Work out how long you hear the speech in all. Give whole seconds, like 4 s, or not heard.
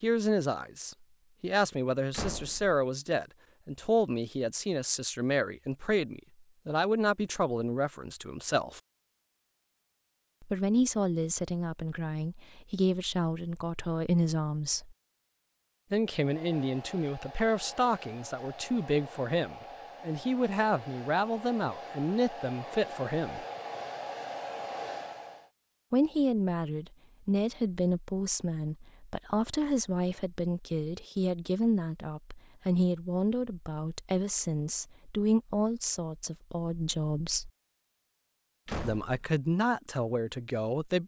35 s.